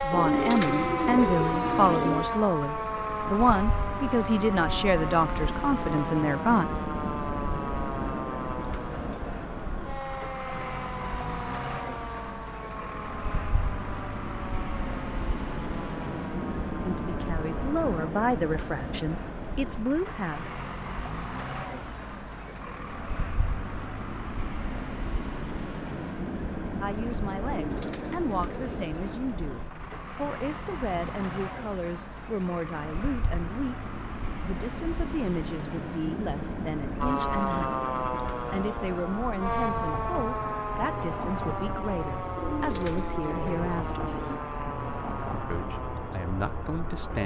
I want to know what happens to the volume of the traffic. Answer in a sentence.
The loudness of the traffic stays about the same.